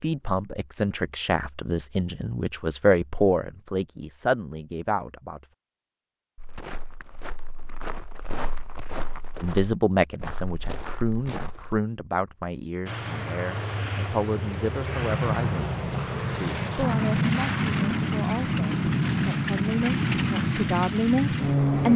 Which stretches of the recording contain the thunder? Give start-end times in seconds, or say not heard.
not heard.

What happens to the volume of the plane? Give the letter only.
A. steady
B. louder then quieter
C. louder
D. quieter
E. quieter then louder
C.